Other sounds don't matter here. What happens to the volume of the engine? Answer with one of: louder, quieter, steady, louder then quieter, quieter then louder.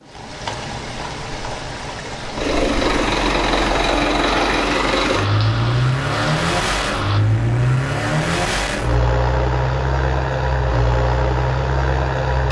steady.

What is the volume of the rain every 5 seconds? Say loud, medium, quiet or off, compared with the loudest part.
loud, loud, off.